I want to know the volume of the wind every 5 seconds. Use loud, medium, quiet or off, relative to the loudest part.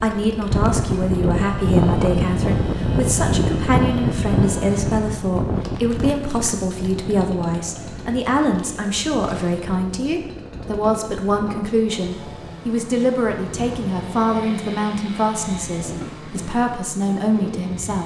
loud, medium, quiet, quiet.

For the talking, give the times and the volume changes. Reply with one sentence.
The talking can be heard from 0.0 to 18.0 s, at a steady volume.